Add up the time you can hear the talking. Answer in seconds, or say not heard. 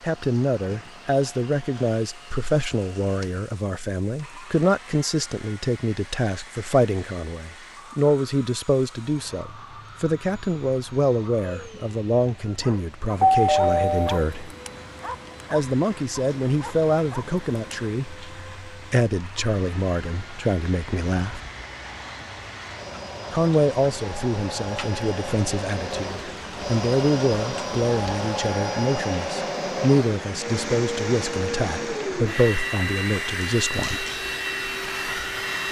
31 s.